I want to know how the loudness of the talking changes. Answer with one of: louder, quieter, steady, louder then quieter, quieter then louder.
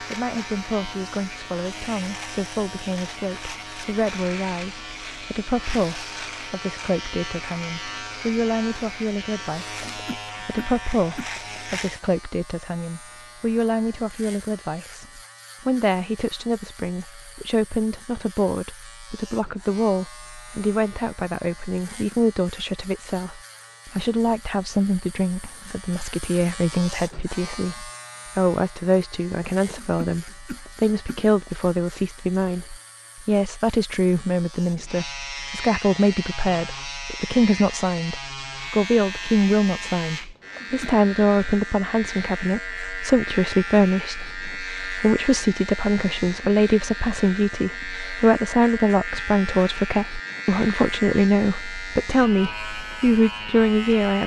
louder.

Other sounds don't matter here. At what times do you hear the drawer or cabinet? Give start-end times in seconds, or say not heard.
not heard.